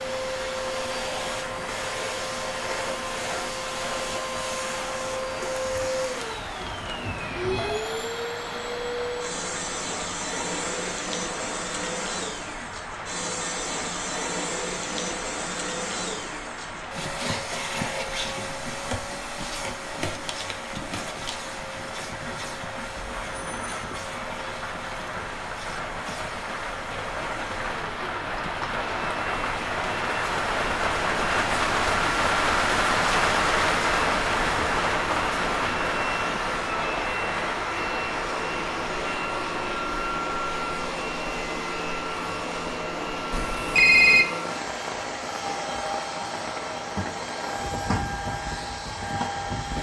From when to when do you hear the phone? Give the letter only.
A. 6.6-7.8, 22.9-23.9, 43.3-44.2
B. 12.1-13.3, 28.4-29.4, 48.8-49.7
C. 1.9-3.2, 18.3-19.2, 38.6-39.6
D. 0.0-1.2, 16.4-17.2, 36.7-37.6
A.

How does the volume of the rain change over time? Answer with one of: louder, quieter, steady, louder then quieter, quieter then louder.
louder then quieter.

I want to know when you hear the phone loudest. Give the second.
44 s.